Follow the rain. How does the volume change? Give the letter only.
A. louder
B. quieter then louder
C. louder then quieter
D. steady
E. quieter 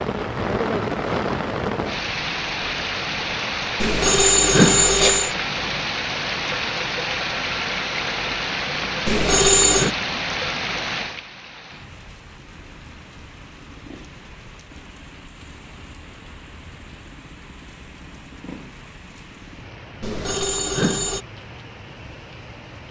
E.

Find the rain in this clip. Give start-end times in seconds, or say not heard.
0.0-22.8.